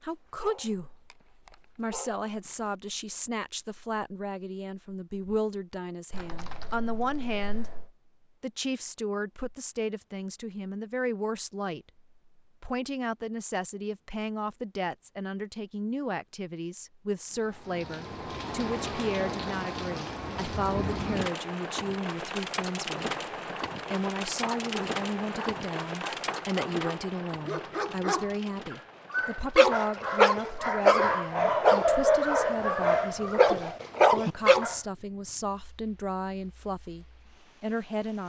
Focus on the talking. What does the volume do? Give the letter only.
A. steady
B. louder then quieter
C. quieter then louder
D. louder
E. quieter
A.